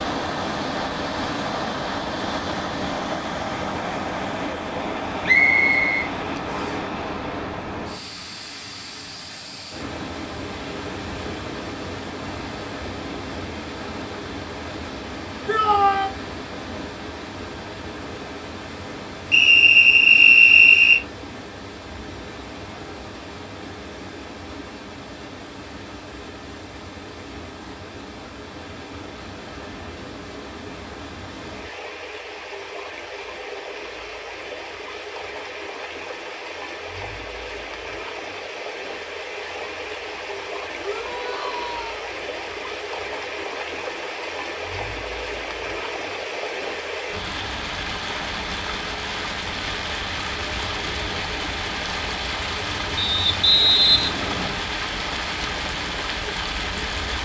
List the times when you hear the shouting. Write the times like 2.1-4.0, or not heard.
15.4-16.1, 40.8-41.9.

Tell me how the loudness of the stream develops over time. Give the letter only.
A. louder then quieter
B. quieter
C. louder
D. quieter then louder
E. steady
D.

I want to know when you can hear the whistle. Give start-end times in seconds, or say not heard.
5.2-6.8, 19.3-21.0, 53.0-54.6.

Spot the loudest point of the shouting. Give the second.
16 s.